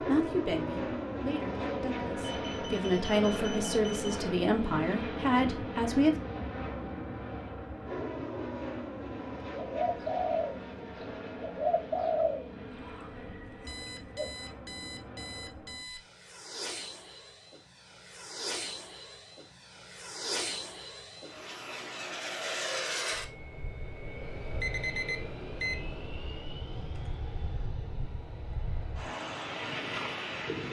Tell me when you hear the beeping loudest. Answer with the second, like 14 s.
25 s.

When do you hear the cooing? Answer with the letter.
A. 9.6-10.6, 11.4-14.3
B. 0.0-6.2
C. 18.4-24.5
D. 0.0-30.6
A.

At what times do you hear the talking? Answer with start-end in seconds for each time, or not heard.
0.0-6.2.